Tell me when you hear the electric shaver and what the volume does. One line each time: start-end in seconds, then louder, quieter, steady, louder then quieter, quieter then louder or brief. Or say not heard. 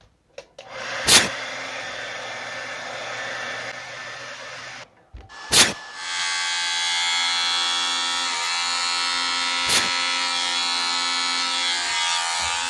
6.0-12.6 steady.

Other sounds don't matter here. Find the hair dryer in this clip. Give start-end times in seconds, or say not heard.
0.0-12.6.